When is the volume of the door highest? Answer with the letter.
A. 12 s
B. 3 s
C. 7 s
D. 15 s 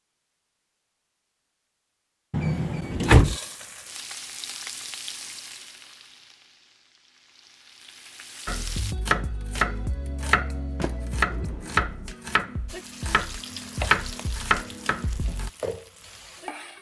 B.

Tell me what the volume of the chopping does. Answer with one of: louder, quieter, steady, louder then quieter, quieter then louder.
quieter then louder.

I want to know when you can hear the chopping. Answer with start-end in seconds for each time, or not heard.
8.4-15.5.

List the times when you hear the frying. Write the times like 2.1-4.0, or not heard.
3.2-8.9, 12.7-16.7.